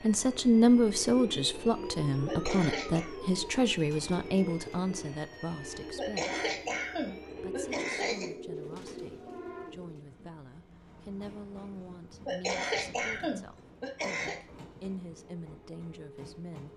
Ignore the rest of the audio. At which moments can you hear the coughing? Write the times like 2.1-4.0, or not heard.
2.2-3.1, 6.0-8.3, 12.2-14.3.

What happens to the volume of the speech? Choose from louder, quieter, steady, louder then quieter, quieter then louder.
quieter.